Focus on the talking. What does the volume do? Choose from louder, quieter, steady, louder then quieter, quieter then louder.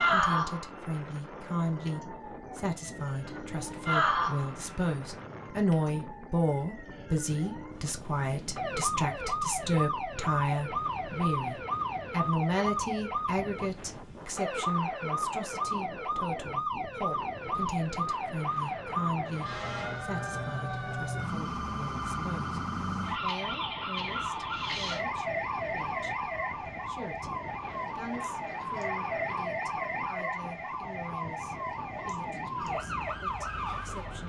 quieter.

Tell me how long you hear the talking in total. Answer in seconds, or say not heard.
34 s.